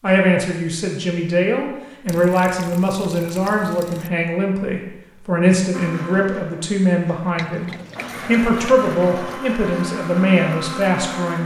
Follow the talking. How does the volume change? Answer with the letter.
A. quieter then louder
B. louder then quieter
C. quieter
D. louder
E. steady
E.